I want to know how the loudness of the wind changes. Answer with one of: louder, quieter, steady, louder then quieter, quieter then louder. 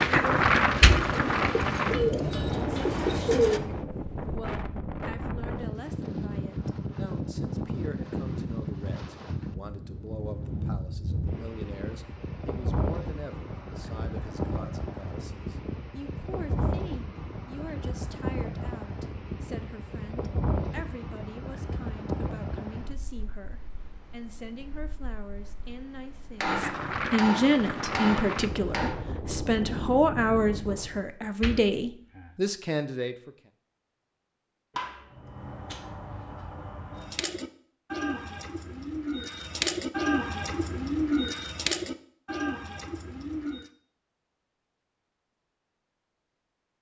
quieter.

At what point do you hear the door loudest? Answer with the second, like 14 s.
1 s.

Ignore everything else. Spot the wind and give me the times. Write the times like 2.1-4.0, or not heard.
0.0-31.1.